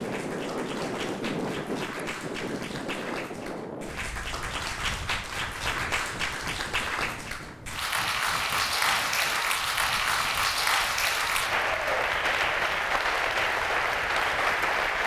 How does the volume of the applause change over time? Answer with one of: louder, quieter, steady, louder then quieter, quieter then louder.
louder.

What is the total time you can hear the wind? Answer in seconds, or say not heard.
15 s.